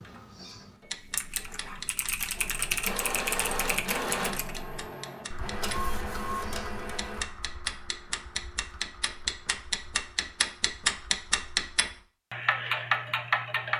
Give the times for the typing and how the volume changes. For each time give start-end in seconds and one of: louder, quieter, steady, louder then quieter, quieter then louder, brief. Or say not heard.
1.0-12.1 quieter.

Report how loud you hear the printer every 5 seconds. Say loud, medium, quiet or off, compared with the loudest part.
loud, loud, off.